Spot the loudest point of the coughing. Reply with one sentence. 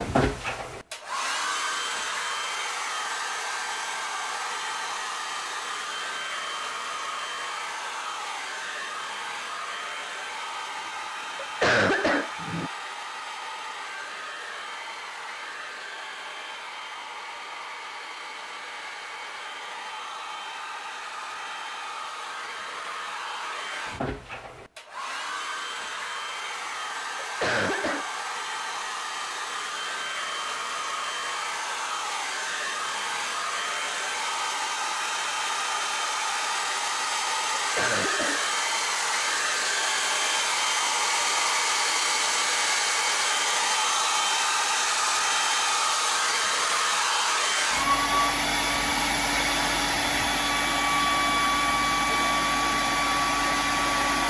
The loudest moment of the coughing is at 12 seconds.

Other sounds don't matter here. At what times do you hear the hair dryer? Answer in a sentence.
You can hear the hair dryer from 0.0 to 54.2 s.